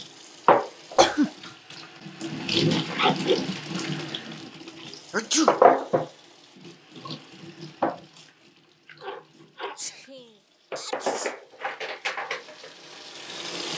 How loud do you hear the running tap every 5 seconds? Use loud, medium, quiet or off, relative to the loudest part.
loud, loud, medium.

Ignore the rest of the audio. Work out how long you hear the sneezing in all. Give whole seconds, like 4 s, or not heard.
3 s.